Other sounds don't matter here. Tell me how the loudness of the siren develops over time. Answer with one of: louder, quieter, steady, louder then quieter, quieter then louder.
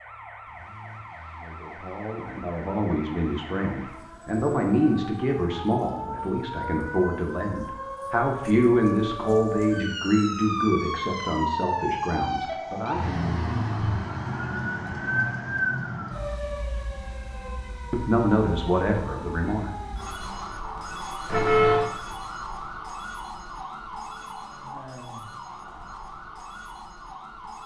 louder then quieter.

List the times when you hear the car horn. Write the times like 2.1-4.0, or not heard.
21.2-21.9.